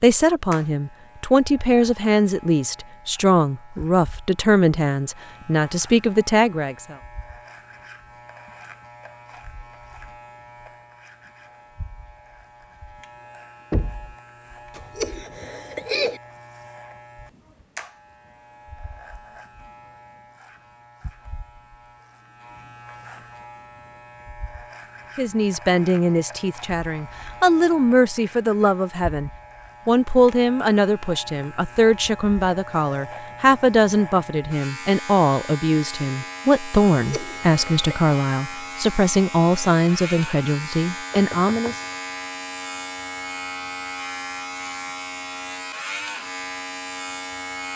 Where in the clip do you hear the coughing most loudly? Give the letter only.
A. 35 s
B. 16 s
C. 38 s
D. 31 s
B.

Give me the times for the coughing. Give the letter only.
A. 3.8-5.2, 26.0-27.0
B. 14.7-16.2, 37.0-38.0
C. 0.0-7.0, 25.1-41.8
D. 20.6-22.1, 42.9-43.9
B.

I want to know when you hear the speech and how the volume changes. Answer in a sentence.
The speech can be heard from 0.0 to 7.0 s, at a steady volume; and from 25.1 to 41.8 s, at a steady volume.